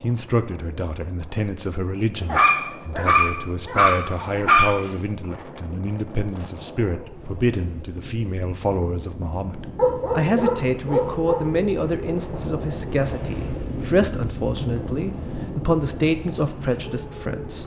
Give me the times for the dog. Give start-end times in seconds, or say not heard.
2.2-4.8, 9.8-11.5.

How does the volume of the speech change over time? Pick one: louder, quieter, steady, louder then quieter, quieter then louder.
louder.